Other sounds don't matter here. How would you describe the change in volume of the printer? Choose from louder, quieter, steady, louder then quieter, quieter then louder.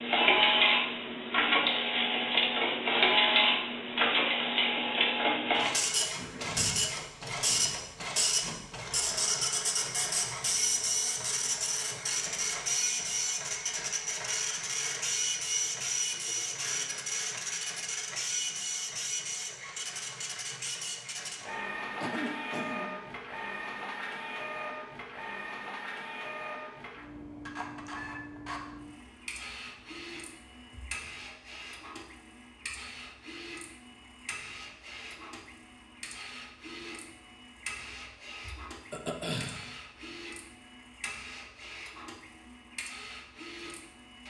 quieter.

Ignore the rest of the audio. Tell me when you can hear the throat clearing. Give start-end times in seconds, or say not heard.
6.2-8.7, 22.0-23.1, 38.9-39.7.